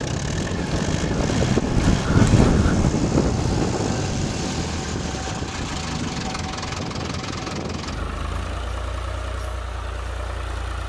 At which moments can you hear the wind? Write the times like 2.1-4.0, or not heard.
0.0-8.9.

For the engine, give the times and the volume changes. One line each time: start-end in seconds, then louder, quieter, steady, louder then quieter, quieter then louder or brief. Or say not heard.
0.0-10.8 quieter.